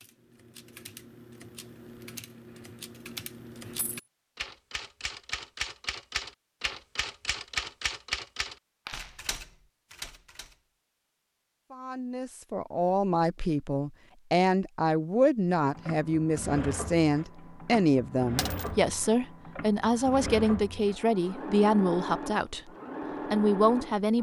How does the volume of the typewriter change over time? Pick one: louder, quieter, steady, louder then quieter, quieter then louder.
louder then quieter.